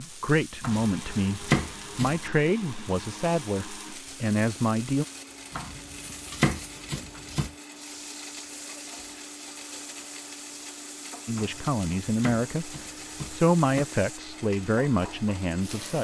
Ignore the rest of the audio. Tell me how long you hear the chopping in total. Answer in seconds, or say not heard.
6 s.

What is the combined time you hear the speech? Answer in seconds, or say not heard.
10 s.